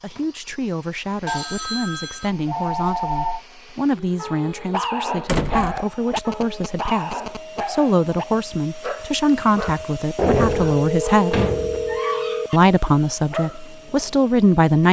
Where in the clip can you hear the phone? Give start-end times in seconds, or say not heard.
1.2-3.5, 5.8-7.7, 10.4-12.5.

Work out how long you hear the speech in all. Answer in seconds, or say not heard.
14 s.